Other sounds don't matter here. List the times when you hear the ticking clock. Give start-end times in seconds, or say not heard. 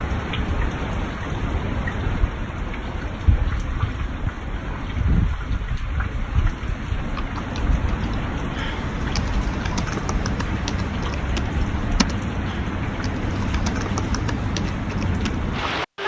not heard.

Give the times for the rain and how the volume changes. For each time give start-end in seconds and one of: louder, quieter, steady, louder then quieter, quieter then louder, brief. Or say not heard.
0.0-16.0 steady.